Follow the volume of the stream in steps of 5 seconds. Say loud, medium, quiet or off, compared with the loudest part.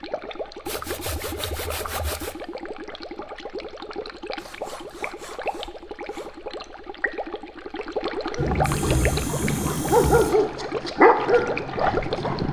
medium, loud, loud.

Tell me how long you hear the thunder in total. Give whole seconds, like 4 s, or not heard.
2 s.